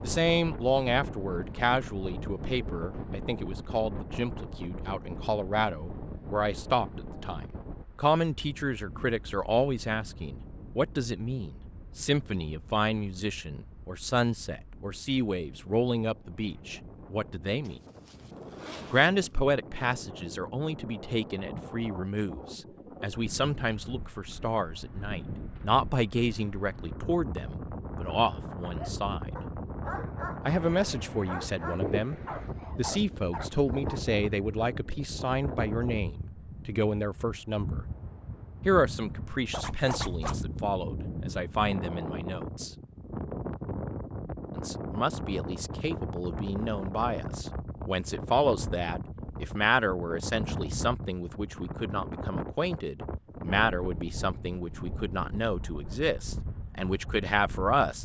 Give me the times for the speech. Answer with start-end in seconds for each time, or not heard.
0.0-17.8, 18.9-29.4, 30.4-37.9, 38.6-42.7, 44.5-57.9.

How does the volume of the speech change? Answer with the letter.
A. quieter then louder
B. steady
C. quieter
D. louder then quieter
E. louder
B.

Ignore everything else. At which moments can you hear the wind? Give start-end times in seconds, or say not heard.
0.0-57.9.